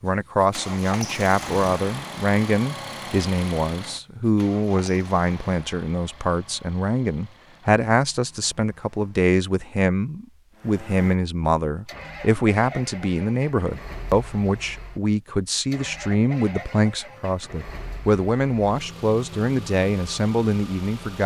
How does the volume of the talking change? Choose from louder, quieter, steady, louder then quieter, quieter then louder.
steady.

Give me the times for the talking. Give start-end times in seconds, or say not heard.
0.0-21.2.